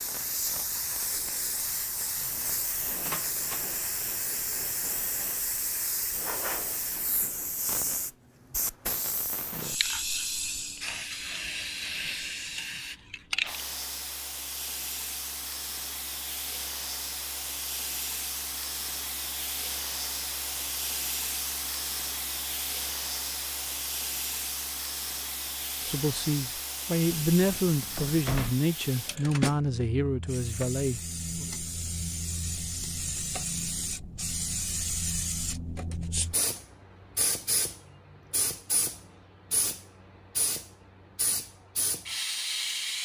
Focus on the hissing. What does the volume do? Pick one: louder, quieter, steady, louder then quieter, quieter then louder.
steady.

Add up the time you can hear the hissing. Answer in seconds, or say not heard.
43 s.